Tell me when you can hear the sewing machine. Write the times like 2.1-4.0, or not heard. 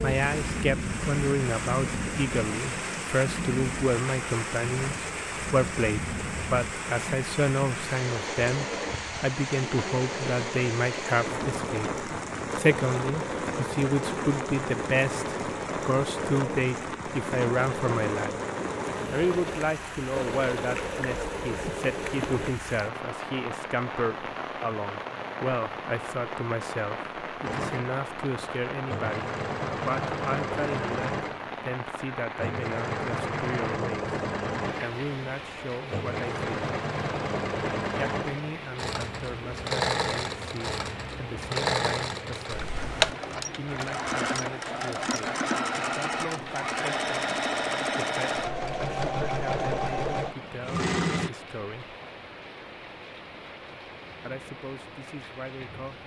8.0-22.6, 27.4-51.3.